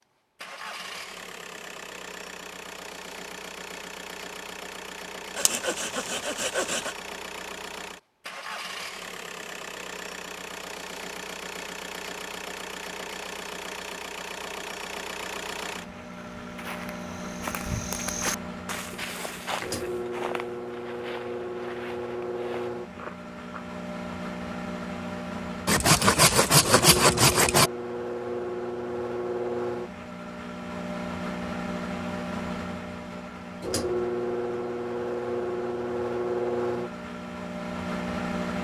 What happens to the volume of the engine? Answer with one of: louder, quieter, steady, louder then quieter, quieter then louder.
louder.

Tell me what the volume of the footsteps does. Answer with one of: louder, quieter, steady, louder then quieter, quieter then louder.
louder then quieter.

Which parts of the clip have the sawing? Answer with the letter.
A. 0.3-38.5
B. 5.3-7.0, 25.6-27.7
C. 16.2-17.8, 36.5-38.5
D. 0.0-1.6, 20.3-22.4
B.